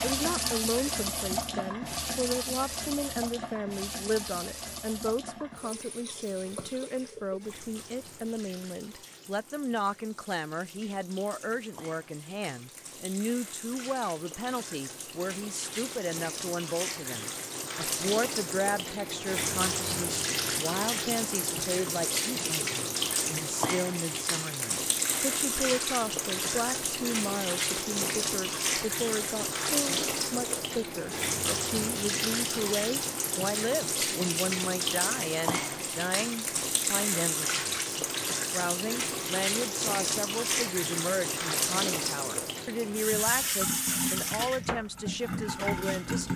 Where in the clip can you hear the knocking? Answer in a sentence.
The knocking can't be heard in this clip.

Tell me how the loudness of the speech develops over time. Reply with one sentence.
The loudness of the speech stays about the same.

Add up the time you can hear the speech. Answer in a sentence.
You can hear the speech for 46 seconds altogether.